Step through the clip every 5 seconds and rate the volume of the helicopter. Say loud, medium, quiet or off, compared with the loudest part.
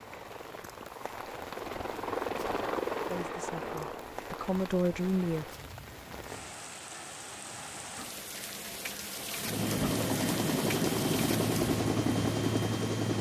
medium, medium, loud.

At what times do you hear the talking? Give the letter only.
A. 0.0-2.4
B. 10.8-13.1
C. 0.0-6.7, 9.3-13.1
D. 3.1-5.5
D.